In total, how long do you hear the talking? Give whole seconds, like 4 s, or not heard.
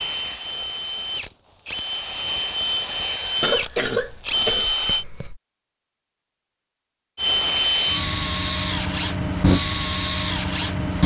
not heard.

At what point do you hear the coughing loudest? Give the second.
4 s.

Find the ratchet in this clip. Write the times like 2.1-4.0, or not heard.
not heard.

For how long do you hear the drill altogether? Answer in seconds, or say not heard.
9 s.